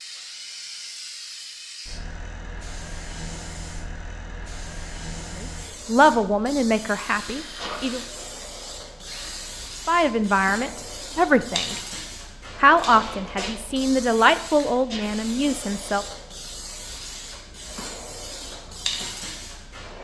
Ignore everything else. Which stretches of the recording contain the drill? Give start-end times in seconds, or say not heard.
7.0-9.7.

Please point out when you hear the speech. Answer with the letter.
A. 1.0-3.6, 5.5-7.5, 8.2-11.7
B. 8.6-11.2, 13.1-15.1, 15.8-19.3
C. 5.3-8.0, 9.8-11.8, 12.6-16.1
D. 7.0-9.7
C.